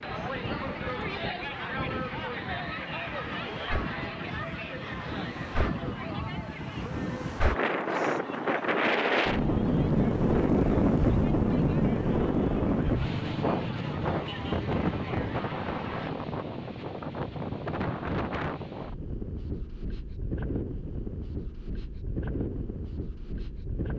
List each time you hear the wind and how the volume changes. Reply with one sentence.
The wind can be heard from 0.0 to 23.9 s, getting louder then quieter.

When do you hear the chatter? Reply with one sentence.
The chatter can be heard from 0.0 to 16.1 s.